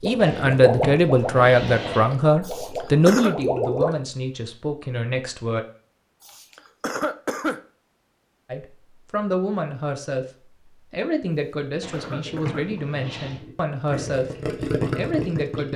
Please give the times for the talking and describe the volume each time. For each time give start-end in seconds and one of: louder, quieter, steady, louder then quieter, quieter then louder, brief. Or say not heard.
0.0-5.7 quieter
8.5-10.2 brief
10.9-15.7 steady.